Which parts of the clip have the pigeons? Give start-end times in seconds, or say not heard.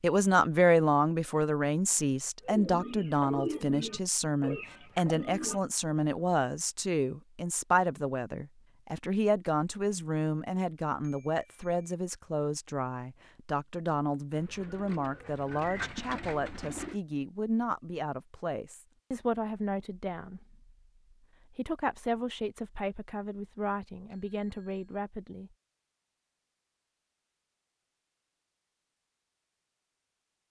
2.4-5.6, 14.3-17.0.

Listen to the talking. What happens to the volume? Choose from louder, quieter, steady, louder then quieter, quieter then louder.
quieter.